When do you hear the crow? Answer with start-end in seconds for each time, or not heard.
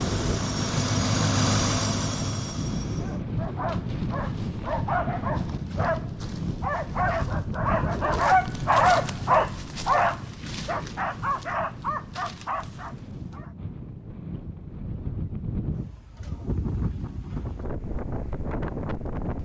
not heard.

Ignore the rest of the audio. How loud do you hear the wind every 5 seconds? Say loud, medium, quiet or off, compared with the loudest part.
loud, loud, medium, loud.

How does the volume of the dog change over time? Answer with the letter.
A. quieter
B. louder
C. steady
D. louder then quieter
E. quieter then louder
D.